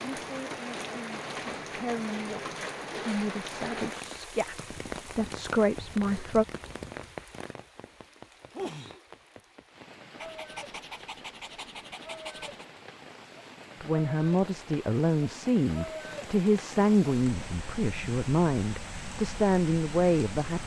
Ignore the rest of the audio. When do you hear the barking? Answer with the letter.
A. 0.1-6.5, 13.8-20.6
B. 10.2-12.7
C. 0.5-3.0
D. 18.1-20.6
B.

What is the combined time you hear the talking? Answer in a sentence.
You can hear the talking for 13 seconds altogether.